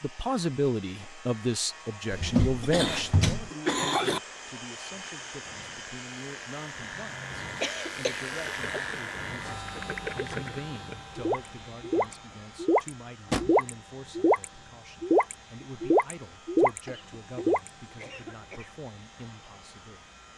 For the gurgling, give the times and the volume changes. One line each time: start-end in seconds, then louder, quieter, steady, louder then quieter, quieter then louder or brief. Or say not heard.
7.9-17.7 louder.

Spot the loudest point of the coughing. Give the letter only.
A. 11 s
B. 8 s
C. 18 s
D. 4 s
D.